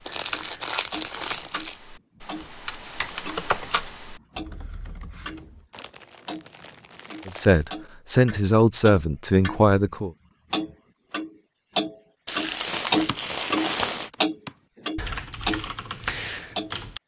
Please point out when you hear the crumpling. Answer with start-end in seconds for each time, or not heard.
0.1-1.8, 5.7-7.7, 12.2-14.1.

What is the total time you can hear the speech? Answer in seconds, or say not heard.
3 s.